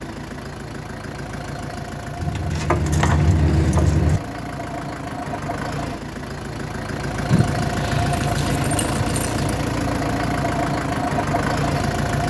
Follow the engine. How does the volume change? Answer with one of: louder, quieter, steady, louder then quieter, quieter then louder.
louder.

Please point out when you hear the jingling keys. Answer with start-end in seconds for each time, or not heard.
2.1-4.2, 7.3-9.4.